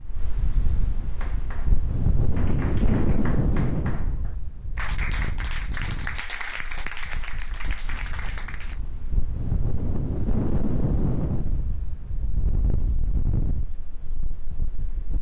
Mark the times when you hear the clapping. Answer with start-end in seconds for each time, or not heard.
1.1-8.8.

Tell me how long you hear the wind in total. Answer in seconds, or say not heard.
15 s.